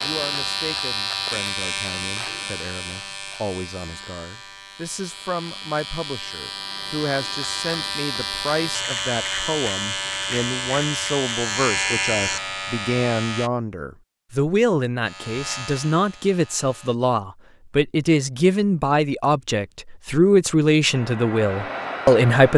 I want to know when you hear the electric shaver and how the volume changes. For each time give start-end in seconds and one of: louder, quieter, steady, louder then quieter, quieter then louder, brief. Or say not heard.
0.0-13.5 quieter then louder
15.1-16.9 brief.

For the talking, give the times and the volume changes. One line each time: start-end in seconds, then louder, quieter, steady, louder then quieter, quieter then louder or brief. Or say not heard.
0.0-22.5 louder.